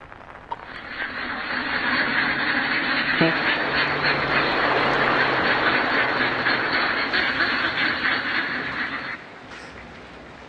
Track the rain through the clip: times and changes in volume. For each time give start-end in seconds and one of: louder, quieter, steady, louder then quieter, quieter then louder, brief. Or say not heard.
0.0-10.4 louder then quieter.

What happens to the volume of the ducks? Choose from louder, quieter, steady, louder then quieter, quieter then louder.
steady.